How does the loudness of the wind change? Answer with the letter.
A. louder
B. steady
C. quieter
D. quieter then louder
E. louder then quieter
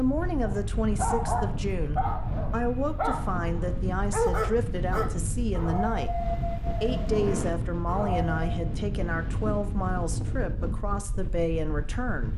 B.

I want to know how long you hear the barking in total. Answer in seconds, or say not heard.
8 s.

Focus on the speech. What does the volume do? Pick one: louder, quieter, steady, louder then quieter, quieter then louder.
steady.